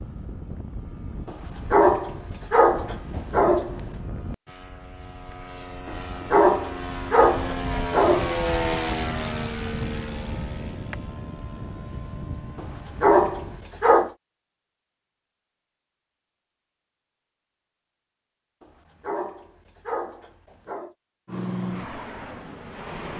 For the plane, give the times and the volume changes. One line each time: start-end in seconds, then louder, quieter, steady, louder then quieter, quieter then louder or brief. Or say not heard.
0.0-13.7 louder then quieter
21.2-23.1 brief.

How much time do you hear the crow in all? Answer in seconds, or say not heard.
not heard.